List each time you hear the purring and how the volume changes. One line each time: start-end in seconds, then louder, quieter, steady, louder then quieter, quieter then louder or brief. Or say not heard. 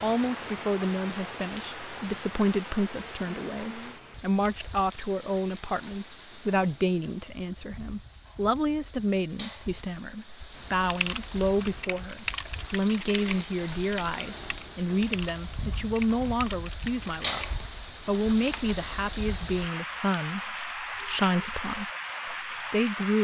not heard.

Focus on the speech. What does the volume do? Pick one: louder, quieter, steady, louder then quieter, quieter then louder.
steady.